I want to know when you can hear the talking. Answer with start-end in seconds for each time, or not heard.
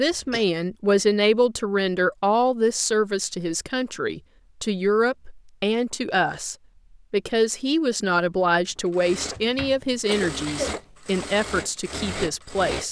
0.0-12.8.